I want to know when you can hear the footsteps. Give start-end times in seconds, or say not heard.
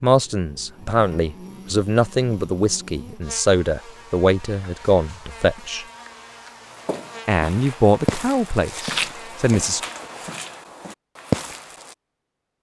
6.7-11.9.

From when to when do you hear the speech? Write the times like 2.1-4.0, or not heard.
0.0-5.8, 7.2-9.8.